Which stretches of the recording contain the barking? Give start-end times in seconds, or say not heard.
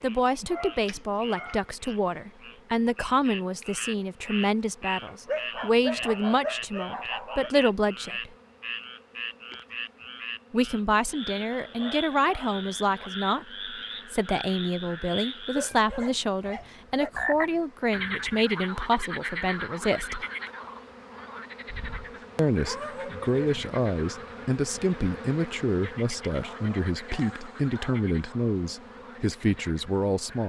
0.4-1.6, 5.0-7.5, 11.5-13.1, 15.6-17.1, 21.6-23.4, 26.4-28.4.